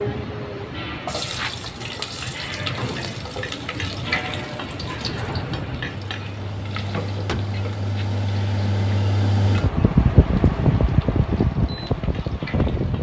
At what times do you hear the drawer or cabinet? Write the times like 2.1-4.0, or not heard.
6.5-7.6.